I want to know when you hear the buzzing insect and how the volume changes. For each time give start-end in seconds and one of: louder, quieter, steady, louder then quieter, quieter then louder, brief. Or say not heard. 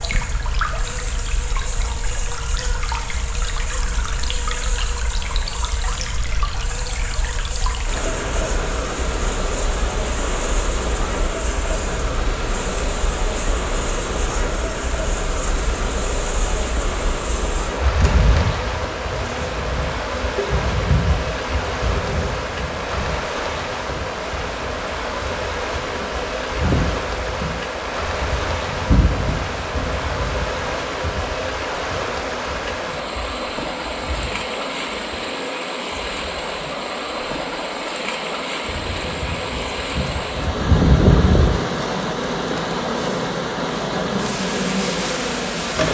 0.0-45.9 louder.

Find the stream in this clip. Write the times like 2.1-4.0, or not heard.
0.0-45.9.